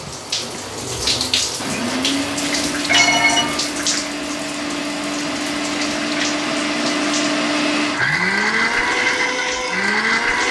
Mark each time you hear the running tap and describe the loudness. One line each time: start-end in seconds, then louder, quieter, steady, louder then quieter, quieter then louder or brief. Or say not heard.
0.0-10.4 quieter.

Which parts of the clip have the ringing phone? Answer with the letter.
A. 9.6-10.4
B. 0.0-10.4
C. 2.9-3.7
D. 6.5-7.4
C.